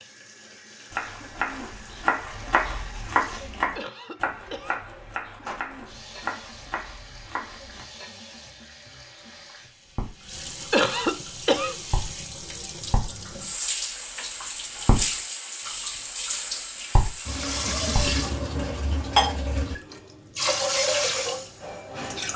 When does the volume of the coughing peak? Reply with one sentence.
The loudest moment of the coughing is at 11 seconds.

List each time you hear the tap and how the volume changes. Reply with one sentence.
The tap can be heard from 0.0 to 22.3 s, getting louder.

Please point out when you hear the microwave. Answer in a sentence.
You can't hear the microwave here.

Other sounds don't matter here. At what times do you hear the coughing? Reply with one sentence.
You can hear the coughing from 3.8 to 4.8 s, from 10.7 to 11.8 s and from 17.6 to 18.3 s.